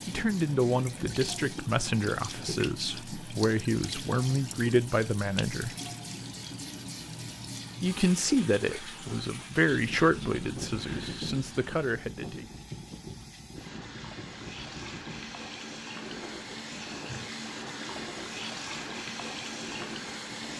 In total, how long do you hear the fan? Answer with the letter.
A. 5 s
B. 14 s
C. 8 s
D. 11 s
D.